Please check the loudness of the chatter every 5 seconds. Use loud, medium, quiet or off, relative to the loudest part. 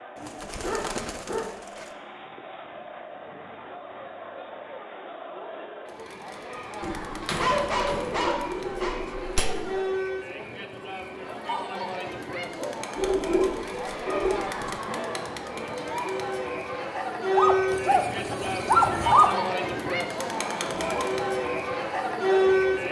quiet, medium, medium, loud, loud.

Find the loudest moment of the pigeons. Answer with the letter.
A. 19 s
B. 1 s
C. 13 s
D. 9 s
C.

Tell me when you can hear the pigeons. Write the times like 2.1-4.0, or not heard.
0.1-1.9, 6.8-9.8, 12.9-14.8, 17.6-19.4.